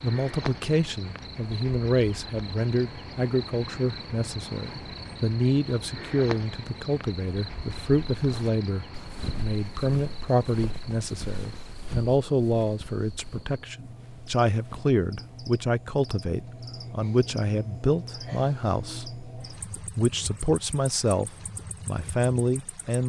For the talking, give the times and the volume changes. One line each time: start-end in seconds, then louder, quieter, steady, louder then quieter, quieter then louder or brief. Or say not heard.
0.0-23.0 steady.